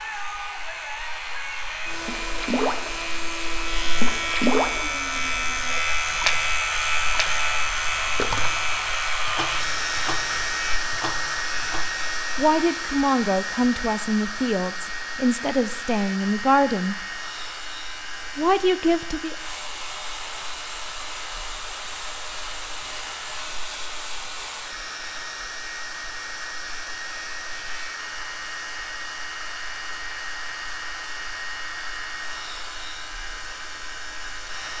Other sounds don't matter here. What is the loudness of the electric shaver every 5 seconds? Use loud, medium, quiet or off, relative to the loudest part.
medium, loud, medium, quiet, quiet, quiet, quiet.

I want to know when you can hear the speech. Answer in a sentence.
The speech can be heard from 12.3 to 16.9 s and from 18.4 to 19.4 s.